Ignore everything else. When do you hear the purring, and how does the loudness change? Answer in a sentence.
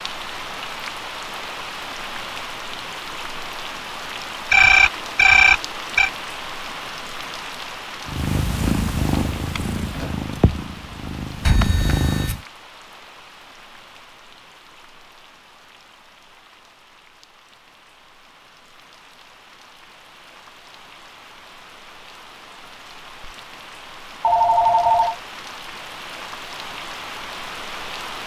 You can hear the purring from 8.1 to 12.4 s, getting quieter then louder.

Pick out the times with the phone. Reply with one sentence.
The phone can be heard from 4.5 to 6.1 s, from 11.4 to 12.3 s and from 24.2 to 25.1 s.